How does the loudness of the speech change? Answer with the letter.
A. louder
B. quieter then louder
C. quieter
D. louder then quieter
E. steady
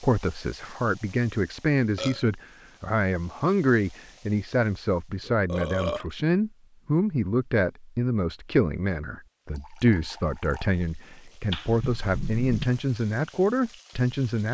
E.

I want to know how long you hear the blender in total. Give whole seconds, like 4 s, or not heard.
not heard.